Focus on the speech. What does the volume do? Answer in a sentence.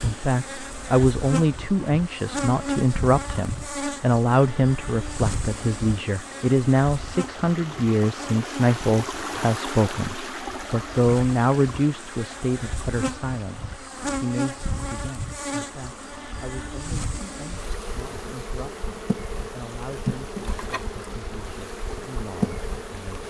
The loudness of the speech goes down.